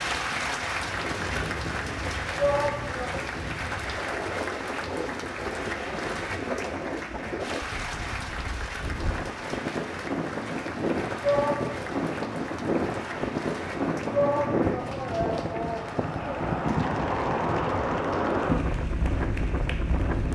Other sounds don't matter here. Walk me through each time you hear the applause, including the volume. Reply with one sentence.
The applause can be heard from 0.0 to 20.2 s, getting quieter.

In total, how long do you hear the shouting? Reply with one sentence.
You can hear the shouting for 4 seconds altogether.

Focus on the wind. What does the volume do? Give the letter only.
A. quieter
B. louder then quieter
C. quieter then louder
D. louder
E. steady
D.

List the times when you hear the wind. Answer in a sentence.
You can hear the wind from 0.0 to 20.2 s.